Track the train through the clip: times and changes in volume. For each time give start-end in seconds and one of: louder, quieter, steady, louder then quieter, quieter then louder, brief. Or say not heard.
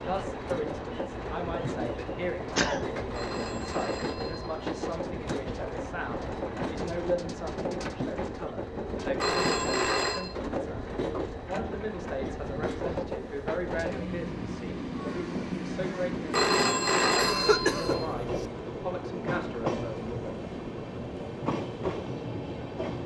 0.0-23.0 steady.